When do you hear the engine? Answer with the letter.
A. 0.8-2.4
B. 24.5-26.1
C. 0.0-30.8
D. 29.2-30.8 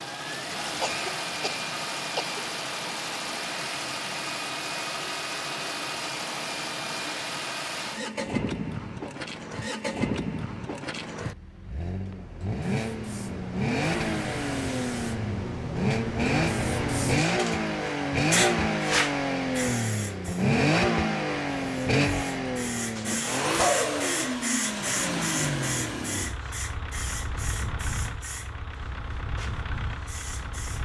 C.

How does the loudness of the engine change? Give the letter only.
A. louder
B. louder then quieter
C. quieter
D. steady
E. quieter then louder
B.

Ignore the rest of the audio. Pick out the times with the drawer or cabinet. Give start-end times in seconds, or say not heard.
not heard.